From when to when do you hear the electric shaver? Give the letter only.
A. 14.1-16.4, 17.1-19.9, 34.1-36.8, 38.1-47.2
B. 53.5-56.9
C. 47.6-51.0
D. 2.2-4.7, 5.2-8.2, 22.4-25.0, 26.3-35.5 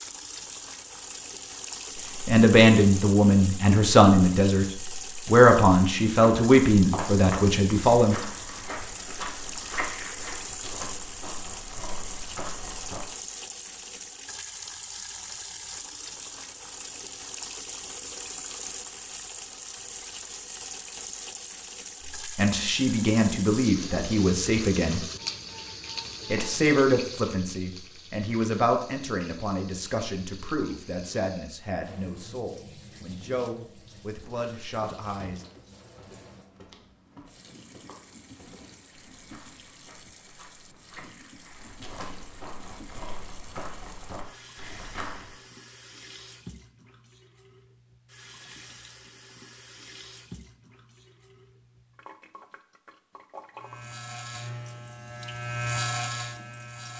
B.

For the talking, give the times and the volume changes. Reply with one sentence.
You can hear the talking briefly from 2.2 to 4.7 s; briefly from 5.2 to 8.2 s; briefly from 22.4 to 25.0 s; and from 26.3 to 35.5 s, getting quieter.